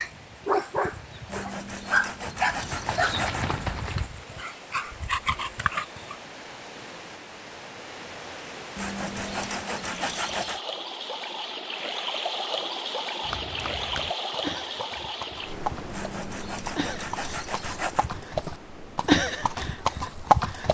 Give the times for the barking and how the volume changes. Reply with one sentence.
You can hear the barking from 0.0 to 6.2 s, getting quieter then louder.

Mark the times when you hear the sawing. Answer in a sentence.
The sawing can be heard from 1.2 to 3.6 s, from 8.8 to 10.6 s and from 15.9 to 18.2 s.